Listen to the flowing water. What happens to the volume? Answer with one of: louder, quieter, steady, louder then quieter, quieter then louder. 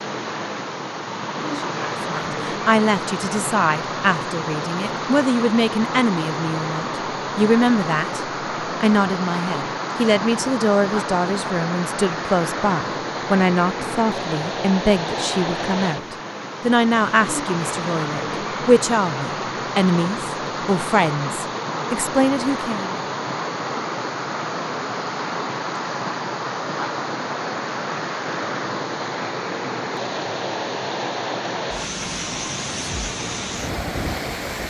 steady.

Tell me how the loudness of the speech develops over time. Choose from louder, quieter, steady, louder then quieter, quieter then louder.
steady.